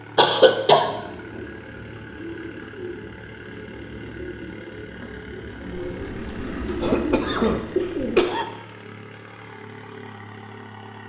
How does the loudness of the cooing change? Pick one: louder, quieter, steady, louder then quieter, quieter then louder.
louder.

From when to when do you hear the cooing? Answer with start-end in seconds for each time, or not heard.
0.8-8.2.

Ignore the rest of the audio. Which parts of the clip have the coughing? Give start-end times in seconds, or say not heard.
0.1-0.9, 5.8-8.4.